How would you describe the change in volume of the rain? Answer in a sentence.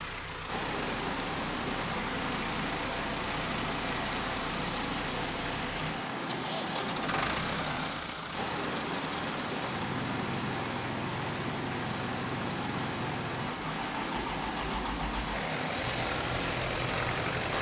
The loudness of the rain stays about the same.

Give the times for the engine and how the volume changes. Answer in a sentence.
The engine can be heard from 0.0 to 17.5 s, at a steady volume.